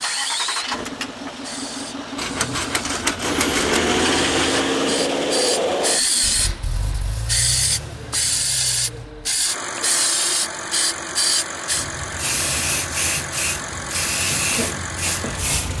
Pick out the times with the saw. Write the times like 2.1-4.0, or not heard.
2.1-4.6.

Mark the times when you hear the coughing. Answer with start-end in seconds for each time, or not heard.
not heard.